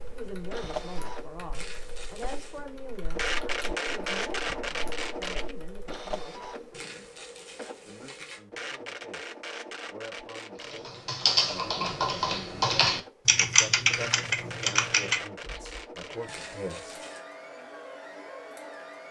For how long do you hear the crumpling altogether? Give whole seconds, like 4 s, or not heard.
4 s.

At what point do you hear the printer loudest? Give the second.
4 s.